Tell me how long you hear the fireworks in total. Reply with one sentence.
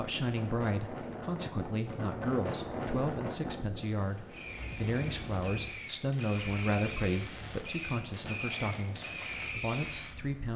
You can hear the fireworks for 6 seconds altogether.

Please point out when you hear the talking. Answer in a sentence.
The talking can be heard from 0.0 to 10.5 s.